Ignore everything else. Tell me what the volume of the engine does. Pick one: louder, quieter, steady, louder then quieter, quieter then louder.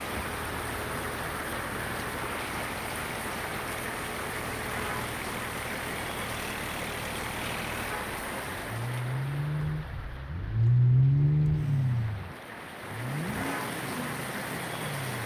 louder then quieter.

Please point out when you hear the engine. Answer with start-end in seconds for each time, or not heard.
0.0-15.2.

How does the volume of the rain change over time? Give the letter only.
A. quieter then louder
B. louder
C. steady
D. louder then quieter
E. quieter
A.